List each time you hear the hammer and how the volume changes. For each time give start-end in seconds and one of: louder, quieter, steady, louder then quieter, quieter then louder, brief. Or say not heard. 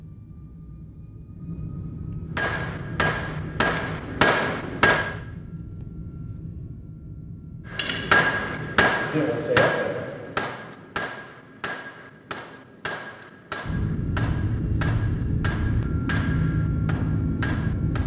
2.4-5.2 brief
7.7-18.0 quieter.